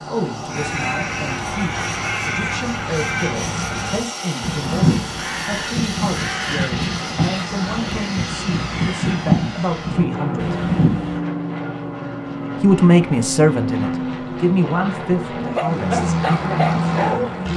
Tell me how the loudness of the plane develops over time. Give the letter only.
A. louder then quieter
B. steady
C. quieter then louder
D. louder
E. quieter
D.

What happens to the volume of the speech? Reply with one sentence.
The volume of the speech goes up, then down.